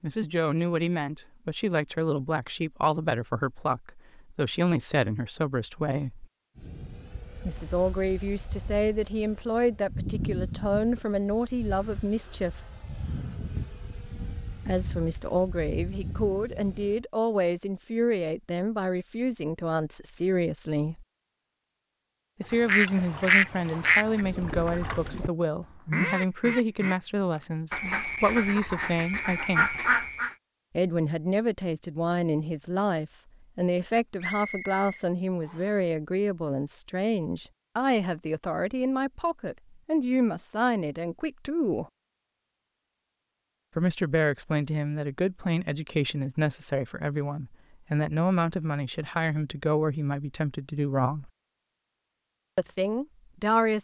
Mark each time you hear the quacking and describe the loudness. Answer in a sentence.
You can hear the quacking from 22.5 to 30.3 s, getting quieter then louder.